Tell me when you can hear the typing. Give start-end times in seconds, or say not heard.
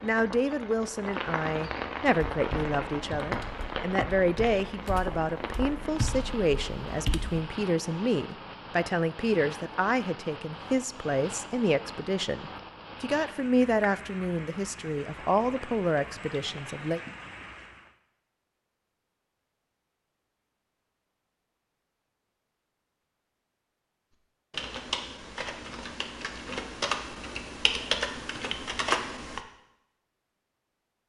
2.3-7.4, 24.5-29.4.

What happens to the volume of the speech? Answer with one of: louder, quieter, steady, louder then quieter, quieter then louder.
steady.